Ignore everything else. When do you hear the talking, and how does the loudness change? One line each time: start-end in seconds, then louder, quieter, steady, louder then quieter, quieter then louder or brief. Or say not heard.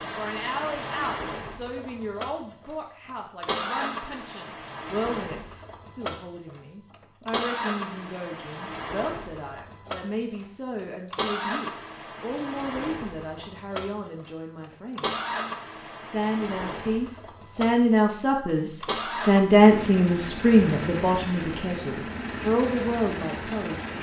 0.0-15.2 steady
16.0-23.9 louder then quieter.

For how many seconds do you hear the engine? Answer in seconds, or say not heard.
24 s.